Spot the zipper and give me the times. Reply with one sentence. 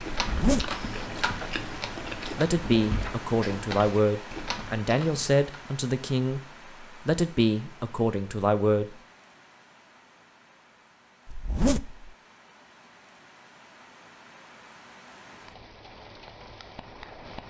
The zipper can be heard from 0.2 to 0.8 s and from 11.2 to 12.1 s.